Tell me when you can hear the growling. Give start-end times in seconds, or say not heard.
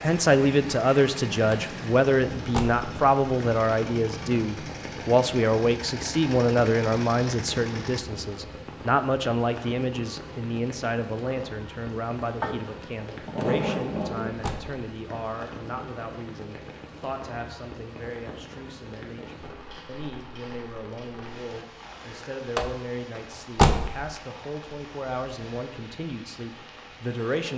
12.4-14.5.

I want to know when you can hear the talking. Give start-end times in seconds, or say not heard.
0.0-27.5.